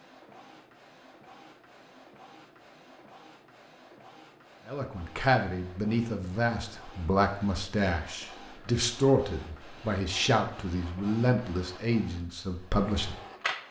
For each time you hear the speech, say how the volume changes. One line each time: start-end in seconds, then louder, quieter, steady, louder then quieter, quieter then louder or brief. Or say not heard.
4.7-13.2 steady.